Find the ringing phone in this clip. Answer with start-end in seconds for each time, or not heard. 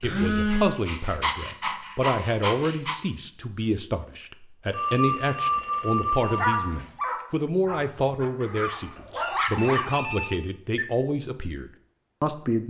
0.0-0.8, 4.7-6.7, 9.8-10.8.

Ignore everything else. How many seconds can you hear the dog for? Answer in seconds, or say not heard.
7 s.